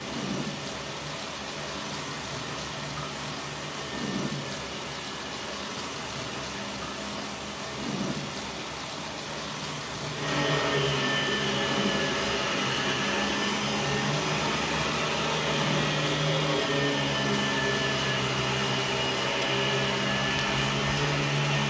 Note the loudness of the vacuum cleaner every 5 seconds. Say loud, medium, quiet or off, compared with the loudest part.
quiet, quiet, loud, loud, loud.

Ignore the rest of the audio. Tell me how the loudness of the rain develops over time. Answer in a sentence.
The volume of the rain stays about the same.